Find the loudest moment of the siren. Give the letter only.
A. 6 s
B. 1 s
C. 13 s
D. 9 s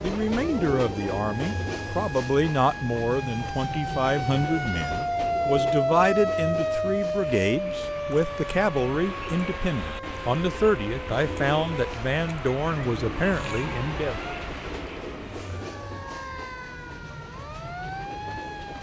A.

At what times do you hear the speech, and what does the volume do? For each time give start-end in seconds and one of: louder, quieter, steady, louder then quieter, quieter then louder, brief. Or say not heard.
0.0-14.2 steady.